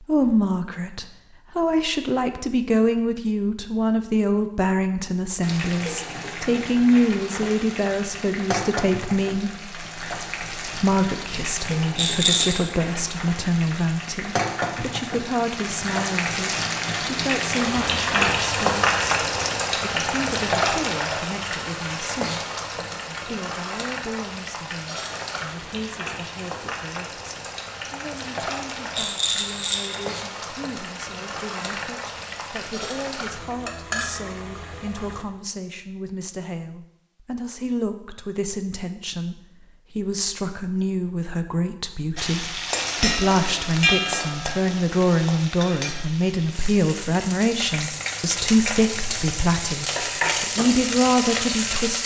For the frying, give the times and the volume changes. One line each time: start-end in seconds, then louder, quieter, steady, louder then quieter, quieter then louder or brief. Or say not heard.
5.4-35.2 louder then quieter
42.1-52.0 quieter then louder.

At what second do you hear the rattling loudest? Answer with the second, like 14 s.
12 s.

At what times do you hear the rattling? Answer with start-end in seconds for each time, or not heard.
11.9-12.7, 28.9-30.1.